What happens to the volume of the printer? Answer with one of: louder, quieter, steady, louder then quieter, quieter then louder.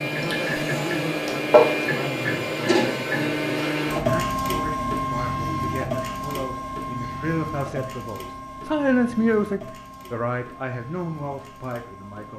quieter.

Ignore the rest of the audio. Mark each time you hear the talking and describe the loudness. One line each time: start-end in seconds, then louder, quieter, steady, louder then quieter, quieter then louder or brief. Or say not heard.
0.1-12.3 louder then quieter.